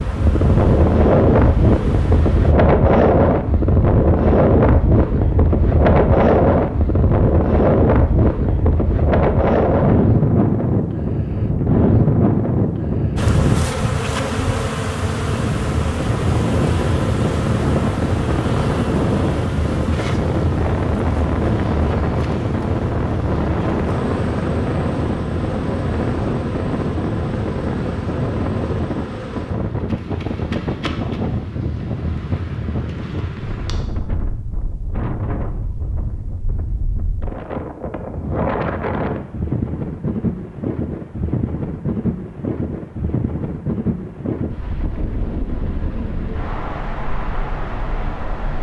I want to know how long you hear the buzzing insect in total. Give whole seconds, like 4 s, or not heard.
23 s.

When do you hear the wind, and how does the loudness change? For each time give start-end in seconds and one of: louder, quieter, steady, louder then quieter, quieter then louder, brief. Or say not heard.
0.0-48.5 quieter.